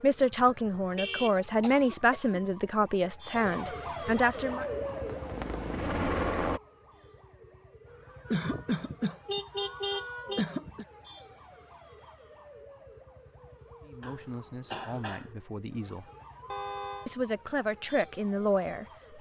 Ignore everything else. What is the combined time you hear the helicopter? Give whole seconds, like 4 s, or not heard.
2 s.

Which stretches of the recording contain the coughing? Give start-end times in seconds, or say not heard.
1.6-2.4, 8.2-10.8, 14.0-15.3.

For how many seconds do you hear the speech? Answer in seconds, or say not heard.
9 s.